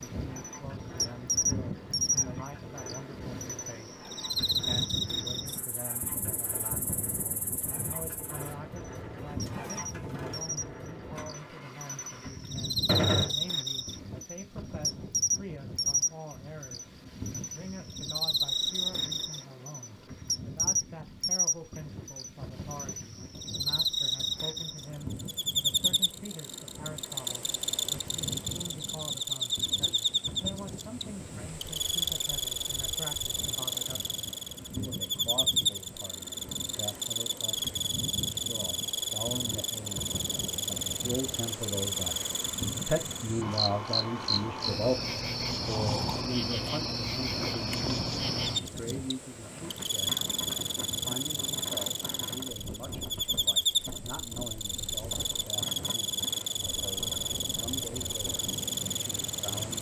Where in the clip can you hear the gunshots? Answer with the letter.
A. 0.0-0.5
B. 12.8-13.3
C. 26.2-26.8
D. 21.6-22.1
B.